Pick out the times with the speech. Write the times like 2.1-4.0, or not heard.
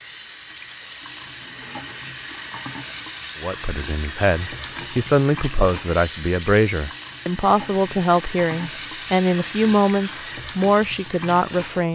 3.4-11.8.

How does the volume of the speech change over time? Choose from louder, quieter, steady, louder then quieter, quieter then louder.
steady.